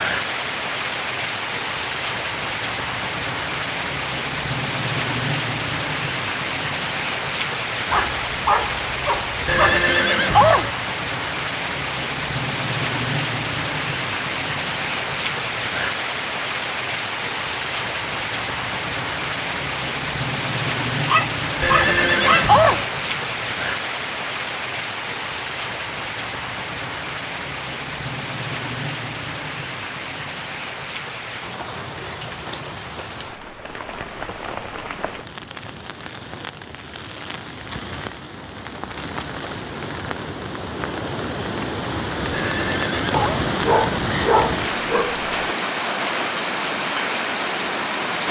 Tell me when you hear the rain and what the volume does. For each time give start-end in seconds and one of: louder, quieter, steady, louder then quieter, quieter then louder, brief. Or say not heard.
0.0-48.2 quieter then louder.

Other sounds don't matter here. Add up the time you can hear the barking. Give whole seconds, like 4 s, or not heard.
6 s.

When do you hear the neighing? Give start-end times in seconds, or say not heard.
9.4-10.7, 21.6-22.9, 42.3-43.5.